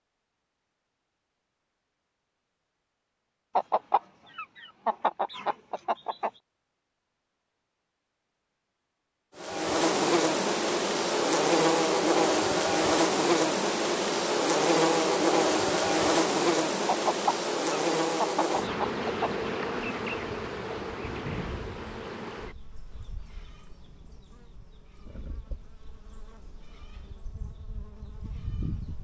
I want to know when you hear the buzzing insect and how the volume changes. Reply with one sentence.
The buzzing insect can be heard from 9.3 to 28.9 s, getting quieter.